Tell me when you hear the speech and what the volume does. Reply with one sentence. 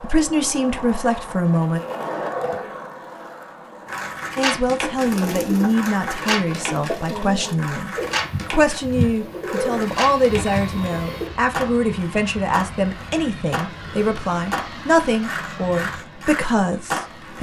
You can hear the speech briefly from 0.0 to 1.8 s; and from 4.3 to 17.3 s, at a steady volume.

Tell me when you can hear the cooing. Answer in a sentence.
You can hear the cooing from 4.9 to 11.3 s.